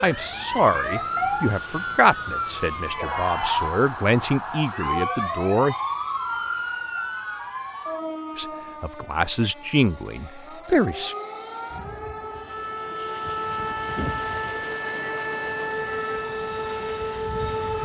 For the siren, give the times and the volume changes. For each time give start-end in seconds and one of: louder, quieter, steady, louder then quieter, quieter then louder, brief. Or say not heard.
0.0-17.8 quieter then louder.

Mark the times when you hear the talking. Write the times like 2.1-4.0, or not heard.
0.0-5.8, 8.3-11.2.